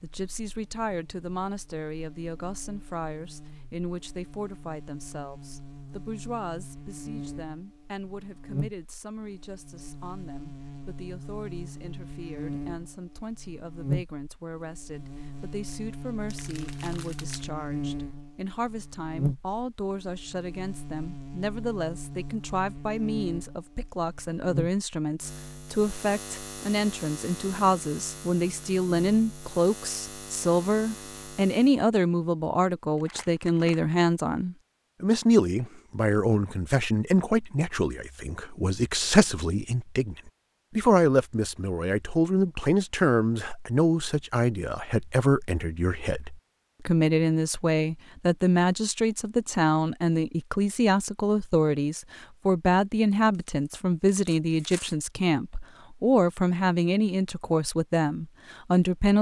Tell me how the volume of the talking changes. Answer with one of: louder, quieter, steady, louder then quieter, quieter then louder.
louder.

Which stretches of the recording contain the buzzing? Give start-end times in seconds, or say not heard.
0.1-31.8.